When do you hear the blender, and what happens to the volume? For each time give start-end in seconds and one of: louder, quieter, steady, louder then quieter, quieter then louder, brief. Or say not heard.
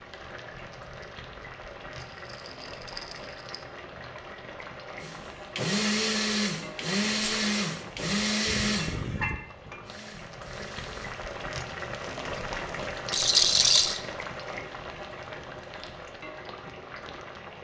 5.0-11.2 quieter.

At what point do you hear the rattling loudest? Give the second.
14 s.